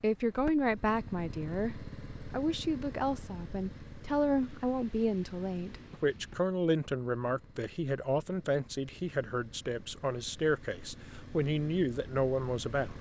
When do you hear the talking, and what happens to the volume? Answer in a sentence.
The talking can be heard from 0.0 to 12.9 s, at a steady volume.